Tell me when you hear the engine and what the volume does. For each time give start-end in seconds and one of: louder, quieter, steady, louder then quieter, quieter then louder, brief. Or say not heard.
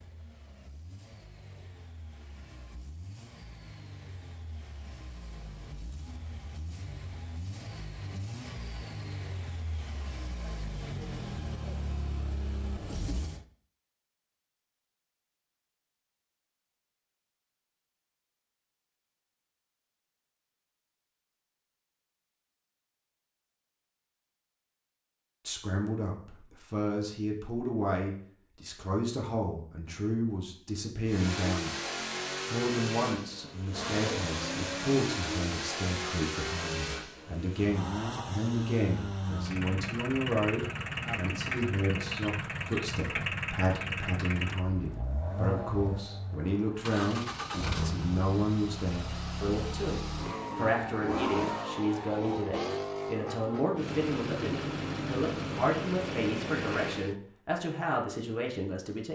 0.0-13.4 louder
31.1-57.1 steady.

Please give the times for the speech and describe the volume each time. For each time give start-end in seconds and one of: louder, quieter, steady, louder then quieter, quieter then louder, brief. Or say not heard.
25.4-31.9 steady
32.5-59.1 steady.